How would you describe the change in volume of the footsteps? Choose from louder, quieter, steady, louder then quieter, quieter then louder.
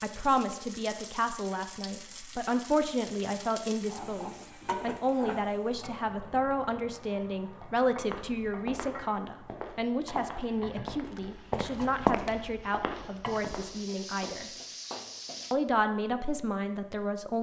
louder then quieter.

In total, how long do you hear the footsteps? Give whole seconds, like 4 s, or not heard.
6 s.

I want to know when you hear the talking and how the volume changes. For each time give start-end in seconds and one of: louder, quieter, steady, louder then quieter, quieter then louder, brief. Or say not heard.
0.0-14.5 steady
15.5-17.3 brief.